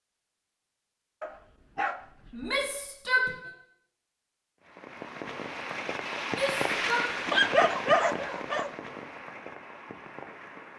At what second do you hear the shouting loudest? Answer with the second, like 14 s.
3 s.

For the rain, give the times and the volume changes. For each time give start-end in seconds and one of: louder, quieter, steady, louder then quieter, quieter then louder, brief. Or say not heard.
4.6-10.7 louder then quieter.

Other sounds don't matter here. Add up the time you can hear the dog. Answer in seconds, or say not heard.
3 s.